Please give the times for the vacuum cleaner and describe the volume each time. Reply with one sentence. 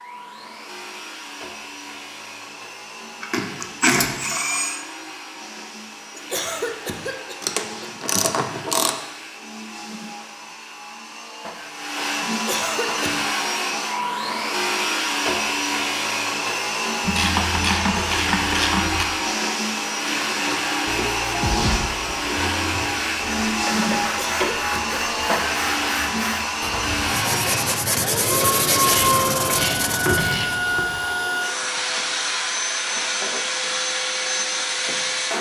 You can hear the vacuum cleaner from 0.0 to 35.3 s, getting louder.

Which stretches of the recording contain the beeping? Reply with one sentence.
You can't hear the beeping here.